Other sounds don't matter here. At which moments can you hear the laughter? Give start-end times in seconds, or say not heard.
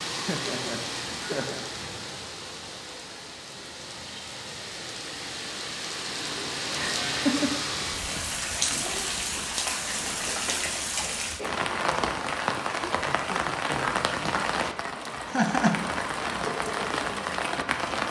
0.2-1.6, 6.7-7.5, 15.3-15.9.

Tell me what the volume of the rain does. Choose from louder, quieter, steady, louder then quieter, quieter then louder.
louder.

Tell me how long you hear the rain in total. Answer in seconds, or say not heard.
18 s.